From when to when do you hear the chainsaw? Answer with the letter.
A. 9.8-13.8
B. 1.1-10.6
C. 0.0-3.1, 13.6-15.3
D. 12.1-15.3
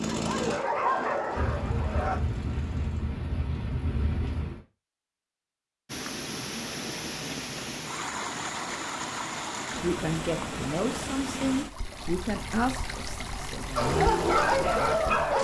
C.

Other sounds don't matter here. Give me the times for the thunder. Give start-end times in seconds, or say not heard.
1.4-4.6.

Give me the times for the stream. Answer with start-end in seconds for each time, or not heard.
5.8-15.3.